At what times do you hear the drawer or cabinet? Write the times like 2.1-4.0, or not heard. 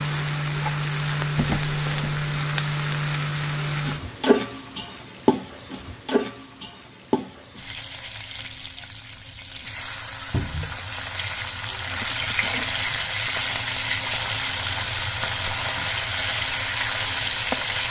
1.4-2.2, 10.3-10.8.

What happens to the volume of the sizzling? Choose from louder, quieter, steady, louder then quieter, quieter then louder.
quieter then louder.